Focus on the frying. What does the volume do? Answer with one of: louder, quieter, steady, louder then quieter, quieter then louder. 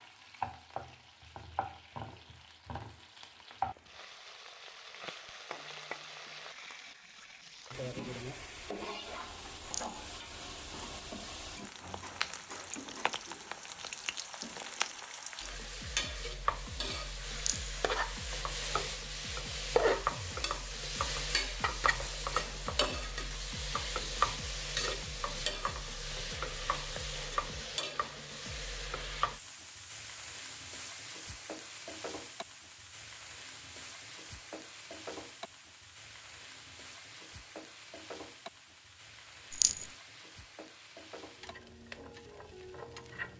louder then quieter.